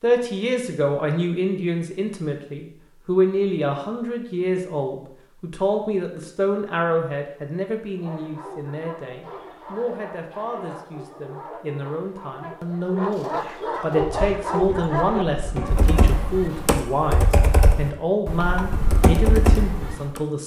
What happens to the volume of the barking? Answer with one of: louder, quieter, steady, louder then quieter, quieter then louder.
louder.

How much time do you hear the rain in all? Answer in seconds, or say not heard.
not heard.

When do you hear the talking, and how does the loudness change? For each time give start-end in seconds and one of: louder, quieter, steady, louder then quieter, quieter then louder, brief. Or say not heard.
0.0-20.4 quieter then louder.